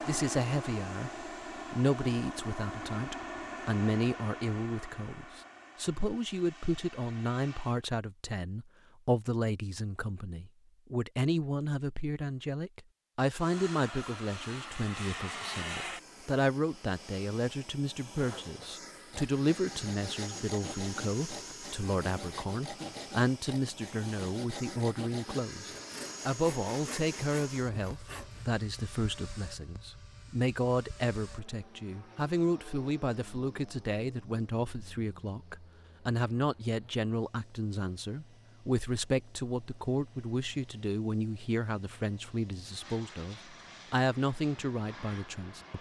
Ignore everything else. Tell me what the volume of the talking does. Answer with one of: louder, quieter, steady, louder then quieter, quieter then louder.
steady.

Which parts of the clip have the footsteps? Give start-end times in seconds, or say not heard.
not heard.